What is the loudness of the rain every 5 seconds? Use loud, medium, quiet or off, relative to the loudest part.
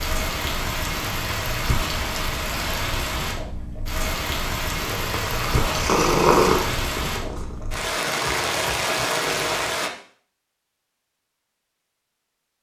loud, loud, off.